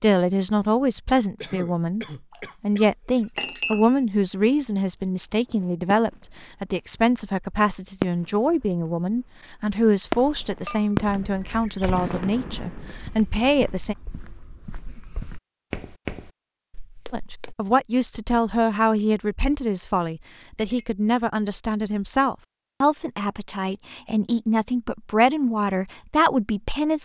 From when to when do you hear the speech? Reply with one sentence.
You can hear the speech from 0.0 to 13.9 s and from 17.1 to 27.0 s.